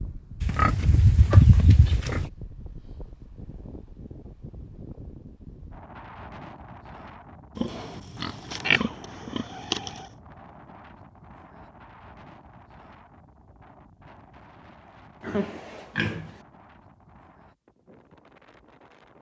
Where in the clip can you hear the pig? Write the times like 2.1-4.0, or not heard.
0.4-2.3, 7.5-10.1, 15.2-16.4.